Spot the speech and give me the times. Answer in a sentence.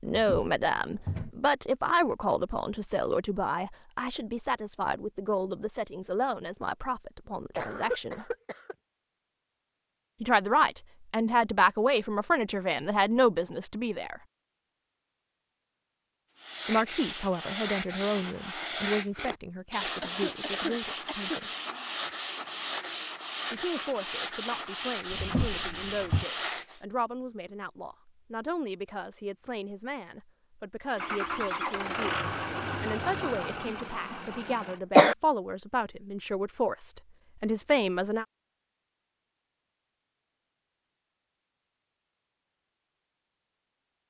The speech can be heard from 0.0 to 8.2 s, from 10.2 to 14.2 s, from 16.6 to 21.5 s and from 23.5 to 38.2 s.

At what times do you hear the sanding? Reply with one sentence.
The sanding can be heard from 16.4 to 26.8 s.